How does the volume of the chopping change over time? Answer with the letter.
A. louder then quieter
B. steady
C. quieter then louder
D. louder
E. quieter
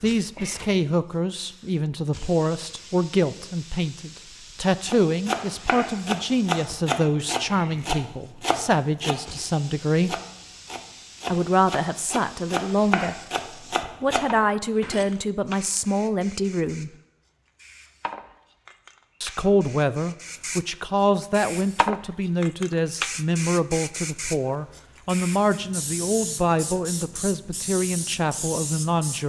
C.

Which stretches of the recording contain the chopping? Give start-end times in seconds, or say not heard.
4.8-15.1.